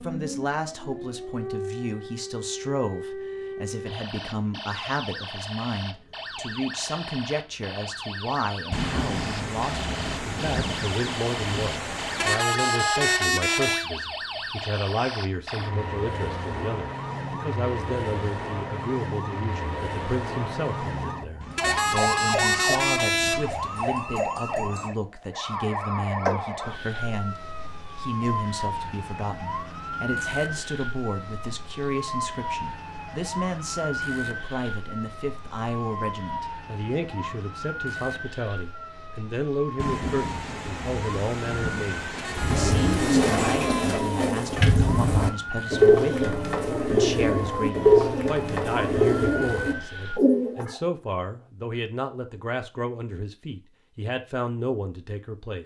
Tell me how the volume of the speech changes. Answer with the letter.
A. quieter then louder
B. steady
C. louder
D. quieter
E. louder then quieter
B.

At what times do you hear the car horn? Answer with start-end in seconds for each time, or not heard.
12.2-13.8, 21.6-23.5, 42.1-44.1.